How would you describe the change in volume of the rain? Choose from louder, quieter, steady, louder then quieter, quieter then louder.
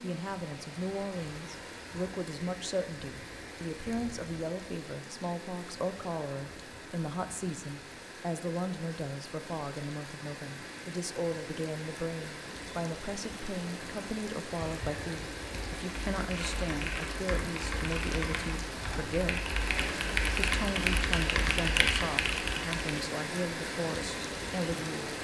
louder.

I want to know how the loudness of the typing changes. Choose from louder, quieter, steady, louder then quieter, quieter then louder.
louder.